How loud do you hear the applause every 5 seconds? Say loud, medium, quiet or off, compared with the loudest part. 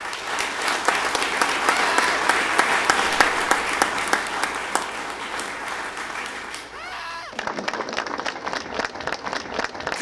loud, medium.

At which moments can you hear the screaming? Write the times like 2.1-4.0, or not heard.
1.6-2.2, 6.7-7.3.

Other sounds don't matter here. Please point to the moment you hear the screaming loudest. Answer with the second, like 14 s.
2 s.